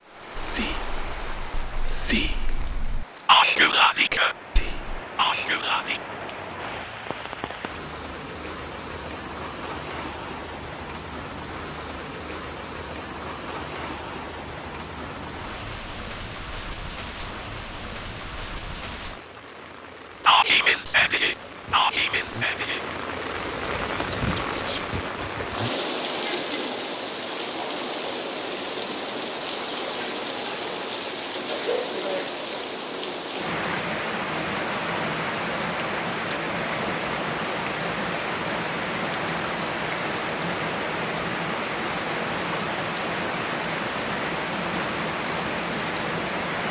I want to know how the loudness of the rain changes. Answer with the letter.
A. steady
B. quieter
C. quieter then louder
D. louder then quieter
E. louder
E.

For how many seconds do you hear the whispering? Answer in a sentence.
The whispering can be heard for 11 seconds in total.